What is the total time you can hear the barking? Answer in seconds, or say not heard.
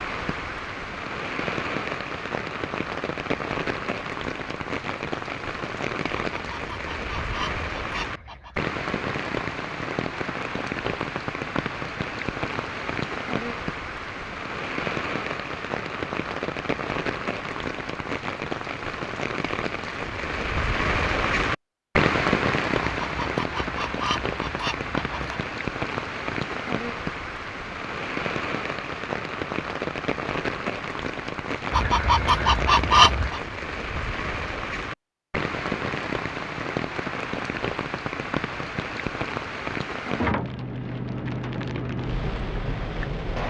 not heard.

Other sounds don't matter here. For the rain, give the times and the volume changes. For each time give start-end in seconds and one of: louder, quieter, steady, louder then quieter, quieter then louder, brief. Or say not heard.
0.0-43.4 steady.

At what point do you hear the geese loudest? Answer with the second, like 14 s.
33 s.